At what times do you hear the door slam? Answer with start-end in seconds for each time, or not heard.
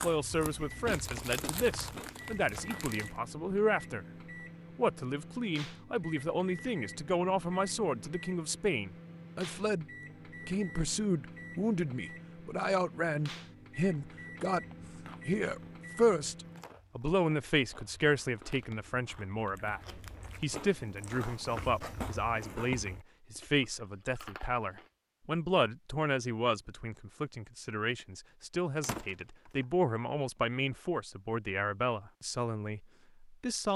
28.8-29.5.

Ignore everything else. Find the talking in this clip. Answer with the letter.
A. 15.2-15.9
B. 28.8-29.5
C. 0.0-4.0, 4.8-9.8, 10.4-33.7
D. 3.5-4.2
C.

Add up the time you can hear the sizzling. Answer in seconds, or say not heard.
not heard.